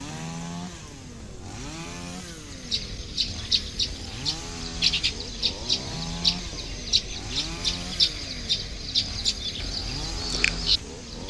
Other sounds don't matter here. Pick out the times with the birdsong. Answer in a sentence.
You can hear the birdsong from 2.2 to 11.2 s.